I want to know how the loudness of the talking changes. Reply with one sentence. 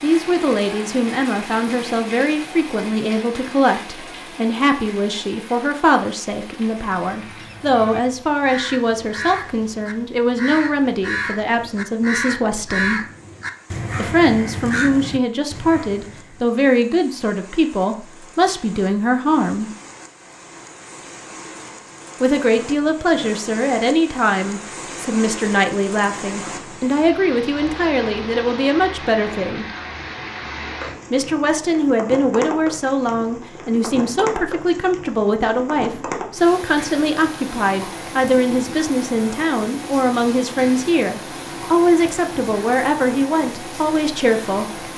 The loudness of the talking stays about the same.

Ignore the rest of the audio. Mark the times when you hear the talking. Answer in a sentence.
The talking can be heard from 0.0 to 13.0 s, from 13.9 to 19.7 s, from 22.2 to 29.6 s and from 31.1 to 44.8 s.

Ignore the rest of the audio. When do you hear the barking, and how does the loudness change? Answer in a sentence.
You can't hear the barking here.